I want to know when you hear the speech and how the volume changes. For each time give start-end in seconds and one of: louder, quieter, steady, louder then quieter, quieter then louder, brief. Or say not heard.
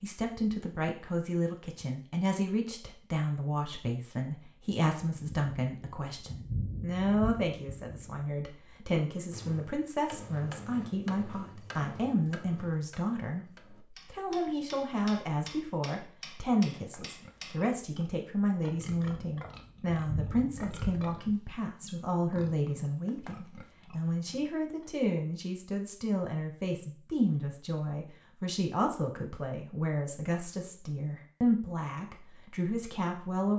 0.0-33.5 steady.